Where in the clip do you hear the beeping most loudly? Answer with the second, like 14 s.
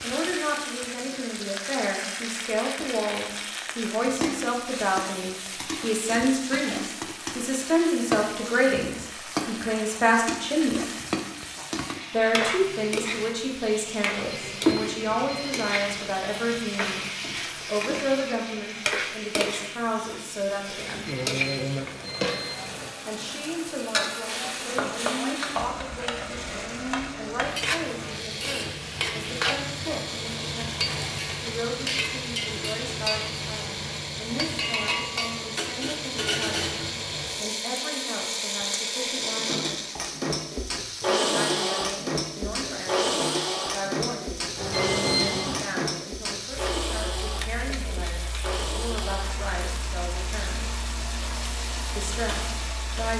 45 s.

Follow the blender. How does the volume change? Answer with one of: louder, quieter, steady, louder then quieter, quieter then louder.
louder then quieter.